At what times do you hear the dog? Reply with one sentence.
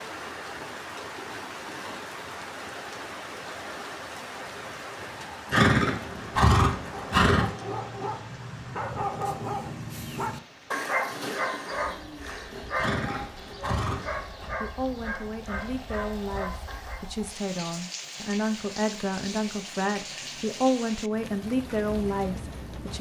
The dog can be heard from 6.8 to 17.1 s.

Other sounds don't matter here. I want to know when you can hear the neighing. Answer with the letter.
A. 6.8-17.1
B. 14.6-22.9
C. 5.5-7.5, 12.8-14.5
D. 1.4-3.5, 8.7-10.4
C.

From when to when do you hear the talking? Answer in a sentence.
You can hear the talking from 14.6 to 22.9 s.